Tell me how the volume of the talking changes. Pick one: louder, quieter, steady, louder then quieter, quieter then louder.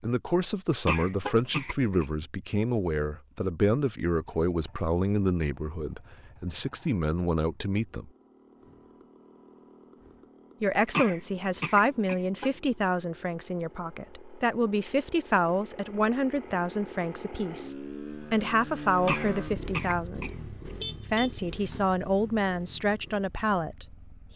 steady.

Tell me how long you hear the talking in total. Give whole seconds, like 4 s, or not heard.
21 s.